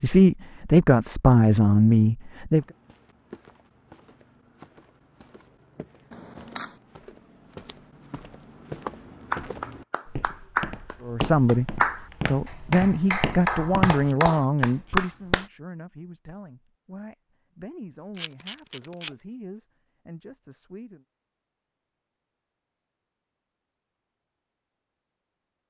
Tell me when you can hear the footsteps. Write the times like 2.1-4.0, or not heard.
2.5-14.1.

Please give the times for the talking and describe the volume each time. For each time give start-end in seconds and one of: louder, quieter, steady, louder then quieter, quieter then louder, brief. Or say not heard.
0.0-2.6 brief
11.0-21.1 quieter.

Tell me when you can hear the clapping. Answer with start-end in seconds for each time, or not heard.
9.3-15.4.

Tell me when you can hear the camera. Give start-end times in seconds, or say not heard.
6.1-6.8, 14.0-15.0, 18.1-19.1.